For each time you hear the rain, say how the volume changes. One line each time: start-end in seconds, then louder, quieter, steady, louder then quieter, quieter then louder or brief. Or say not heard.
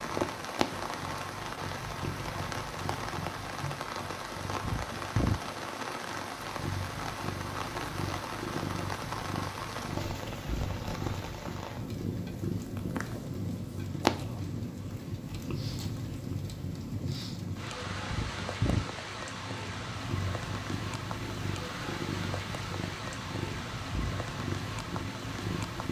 0.0-25.8 steady.